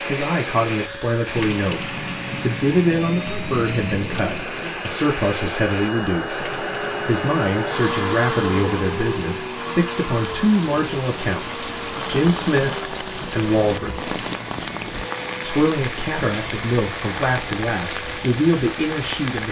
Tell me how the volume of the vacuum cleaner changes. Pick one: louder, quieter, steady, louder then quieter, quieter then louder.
louder then quieter.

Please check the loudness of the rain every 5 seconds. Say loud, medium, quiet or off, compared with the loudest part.
loud, medium, loud, loud.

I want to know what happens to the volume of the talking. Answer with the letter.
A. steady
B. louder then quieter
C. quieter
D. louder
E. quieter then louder
A.